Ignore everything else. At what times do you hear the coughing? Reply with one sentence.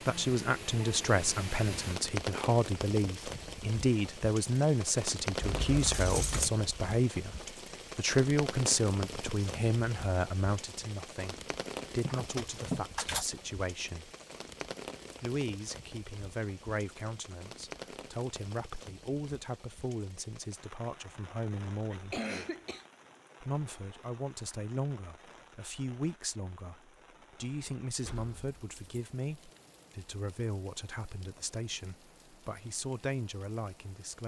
The coughing can be heard from 21.9 to 22.9 s.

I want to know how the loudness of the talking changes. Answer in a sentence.
The volume of the talking goes down.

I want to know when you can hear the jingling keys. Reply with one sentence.
You can hear the jingling keys from 5.4 to 6.5 s, from 12.1 to 13.3 s and from 27.9 to 29.0 s.